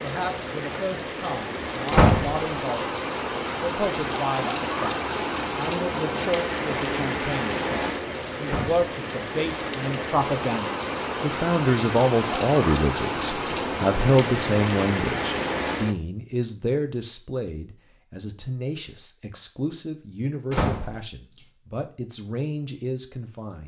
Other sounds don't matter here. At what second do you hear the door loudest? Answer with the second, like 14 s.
2 s.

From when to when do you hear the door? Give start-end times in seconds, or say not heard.
1.9-2.4, 8.4-8.8, 20.5-20.9.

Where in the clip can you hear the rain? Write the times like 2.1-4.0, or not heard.
0.0-15.9.